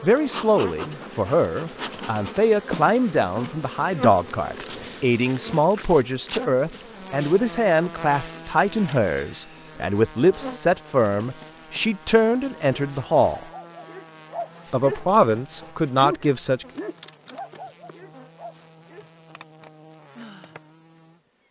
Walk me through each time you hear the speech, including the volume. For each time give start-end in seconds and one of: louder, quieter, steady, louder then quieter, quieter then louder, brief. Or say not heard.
0.0-13.4 steady
14.7-16.6 brief.